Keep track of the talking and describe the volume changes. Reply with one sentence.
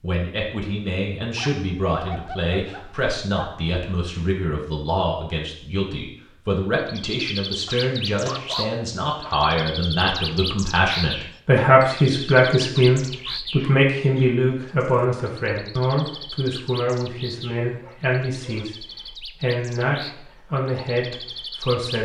The loudness of the talking goes up, then down.